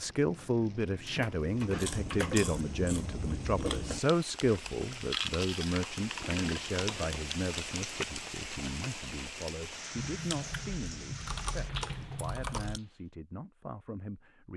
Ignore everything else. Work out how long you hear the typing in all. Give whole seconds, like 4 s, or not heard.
6 s.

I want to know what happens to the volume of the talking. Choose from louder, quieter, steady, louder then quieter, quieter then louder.
quieter.